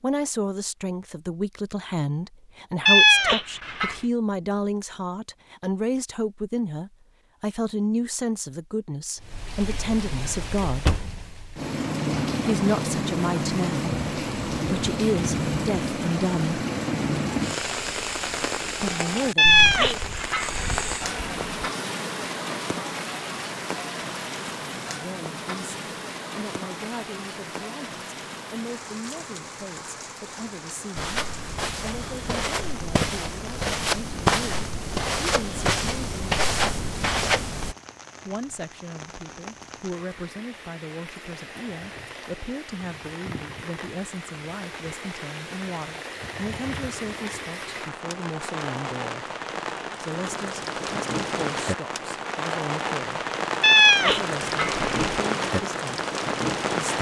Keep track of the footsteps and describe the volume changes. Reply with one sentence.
The loudness of the footsteps goes up.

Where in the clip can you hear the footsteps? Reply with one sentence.
You can hear the footsteps from 30.9 to 37.8 s.